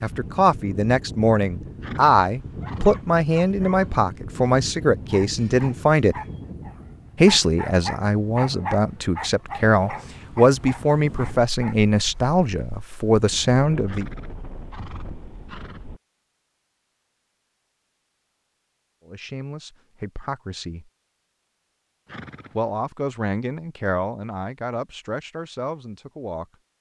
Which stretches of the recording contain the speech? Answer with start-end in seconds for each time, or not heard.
0.0-6.2, 7.2-14.1, 19.1-20.9, 22.6-26.4.